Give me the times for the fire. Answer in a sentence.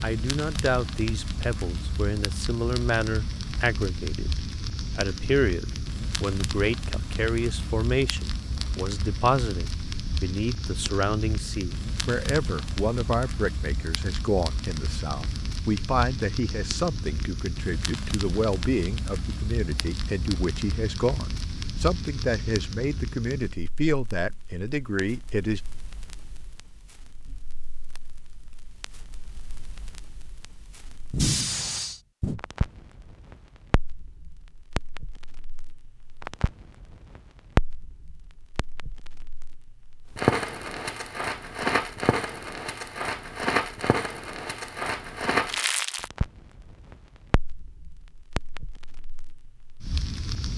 You can hear the fire from 0.0 to 50.5 s.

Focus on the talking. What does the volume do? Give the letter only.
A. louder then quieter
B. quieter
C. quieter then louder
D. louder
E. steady
E.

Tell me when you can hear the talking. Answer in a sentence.
The talking can be heard from 0.0 to 25.6 s.